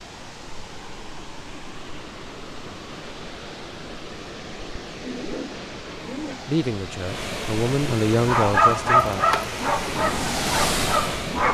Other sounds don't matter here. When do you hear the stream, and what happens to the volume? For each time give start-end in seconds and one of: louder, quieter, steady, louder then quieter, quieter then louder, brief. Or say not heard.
0.0-11.4 louder.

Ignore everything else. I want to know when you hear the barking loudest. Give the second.
9 s.